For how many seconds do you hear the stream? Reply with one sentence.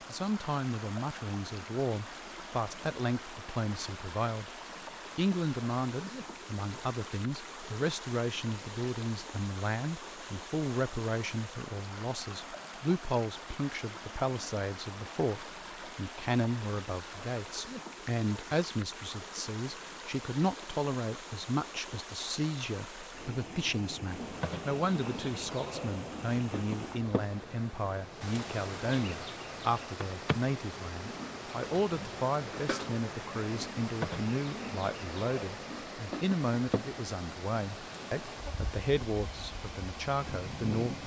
You can hear the stream for 41 seconds altogether.